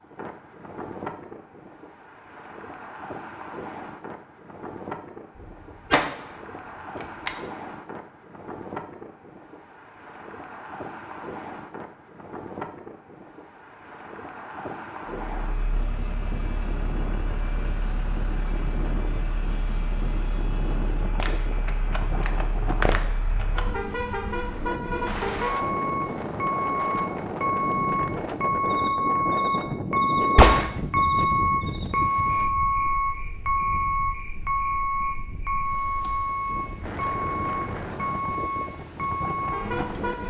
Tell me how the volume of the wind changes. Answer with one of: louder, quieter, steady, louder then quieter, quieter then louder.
louder then quieter.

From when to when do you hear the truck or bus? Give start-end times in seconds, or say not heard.
15.3-40.2.